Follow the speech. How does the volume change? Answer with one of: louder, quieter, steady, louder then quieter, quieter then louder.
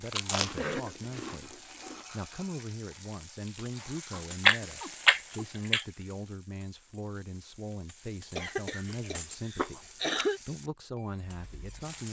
steady.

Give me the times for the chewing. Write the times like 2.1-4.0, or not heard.
0.1-1.9, 4.5-5.8, 8.2-10.2.